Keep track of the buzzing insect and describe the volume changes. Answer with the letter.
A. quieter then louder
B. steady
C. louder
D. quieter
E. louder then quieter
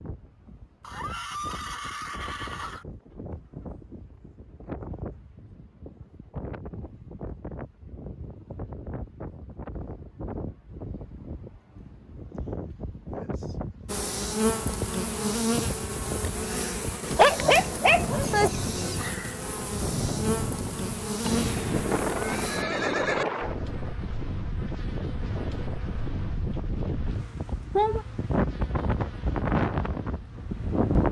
A.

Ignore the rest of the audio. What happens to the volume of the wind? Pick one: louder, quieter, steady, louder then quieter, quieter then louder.
louder.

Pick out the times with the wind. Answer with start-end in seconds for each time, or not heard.
0.0-31.0.